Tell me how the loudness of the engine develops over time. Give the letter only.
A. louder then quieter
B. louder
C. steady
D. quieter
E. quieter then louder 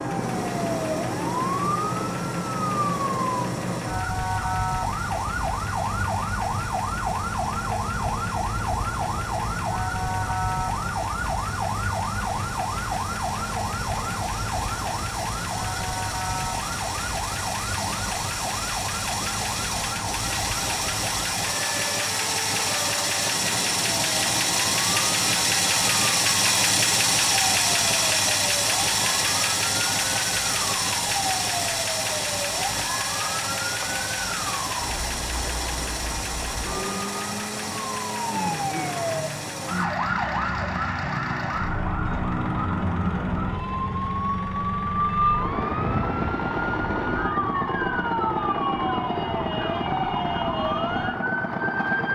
A.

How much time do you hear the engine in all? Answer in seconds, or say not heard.
52 s.